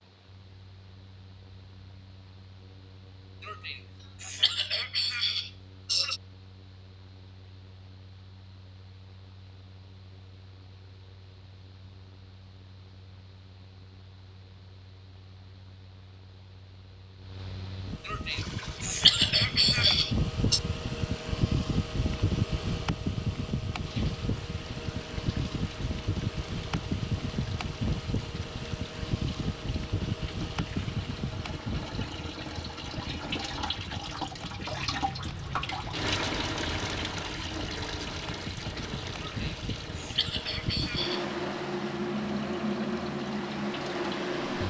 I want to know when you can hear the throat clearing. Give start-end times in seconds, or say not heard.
3.4-6.2, 18.1-20.6, 39.2-41.2.